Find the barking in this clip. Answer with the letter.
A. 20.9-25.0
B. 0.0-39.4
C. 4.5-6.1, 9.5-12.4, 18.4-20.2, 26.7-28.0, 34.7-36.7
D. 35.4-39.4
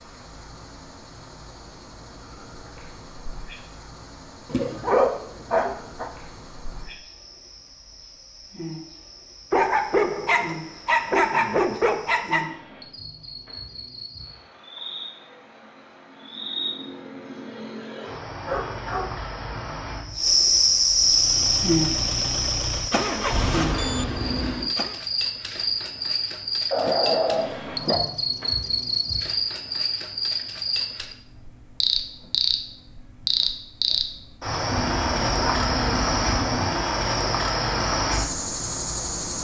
C.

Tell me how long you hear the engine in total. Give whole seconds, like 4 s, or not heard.
4 s.